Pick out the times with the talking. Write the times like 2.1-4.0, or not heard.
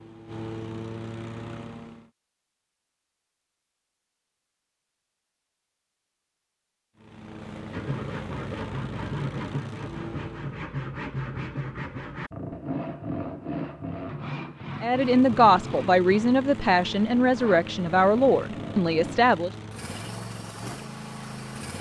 14.8-19.5.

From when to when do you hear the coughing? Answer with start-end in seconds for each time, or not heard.
not heard.